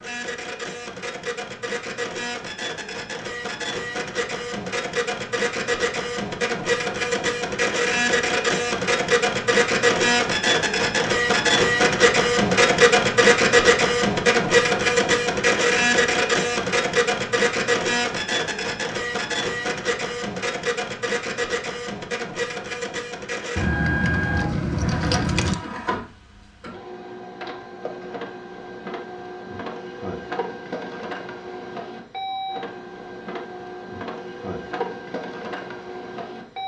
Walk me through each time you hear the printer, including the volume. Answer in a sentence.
You can hear the printer from 0.0 to 36.6 s, getting louder then quieter.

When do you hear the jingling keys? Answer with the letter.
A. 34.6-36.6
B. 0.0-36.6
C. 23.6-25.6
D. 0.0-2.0
C.